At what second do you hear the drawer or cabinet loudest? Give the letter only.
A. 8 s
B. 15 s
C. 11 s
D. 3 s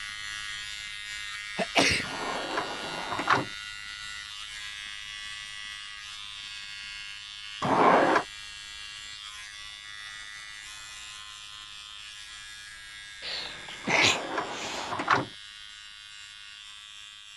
A.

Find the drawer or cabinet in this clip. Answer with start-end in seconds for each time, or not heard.
2.0-3.5, 7.6-8.2, 13.8-15.3.